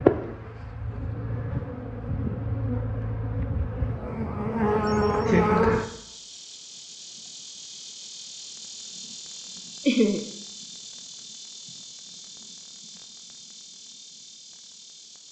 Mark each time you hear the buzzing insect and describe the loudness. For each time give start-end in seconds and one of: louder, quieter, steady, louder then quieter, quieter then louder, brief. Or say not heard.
0.0-15.2 louder then quieter.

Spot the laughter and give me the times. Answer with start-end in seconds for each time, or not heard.
4.8-5.8, 9.8-10.2.